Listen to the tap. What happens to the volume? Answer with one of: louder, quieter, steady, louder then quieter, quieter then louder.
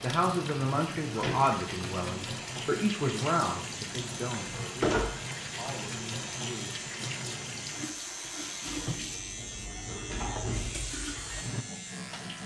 steady.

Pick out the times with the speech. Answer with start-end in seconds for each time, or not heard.
0.0-5.0, 5.5-6.8.